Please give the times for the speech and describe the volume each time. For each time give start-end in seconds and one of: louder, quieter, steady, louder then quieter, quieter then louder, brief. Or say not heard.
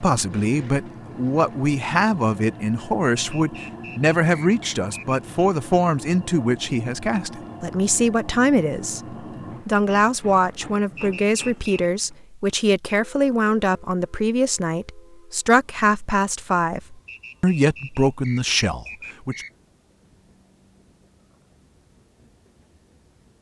0.0-19.4 steady.